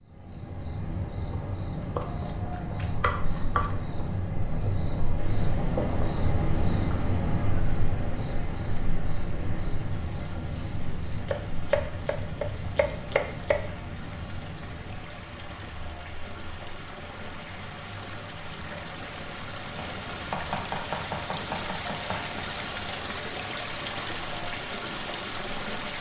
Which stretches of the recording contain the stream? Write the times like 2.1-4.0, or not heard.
5.2-25.9.